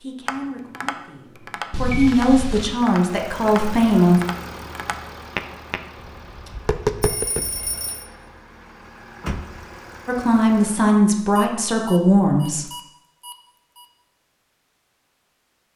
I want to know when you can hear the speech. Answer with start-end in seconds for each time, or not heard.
0.0-4.2, 10.1-12.7.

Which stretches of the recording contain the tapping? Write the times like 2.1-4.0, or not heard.
0.2-7.8.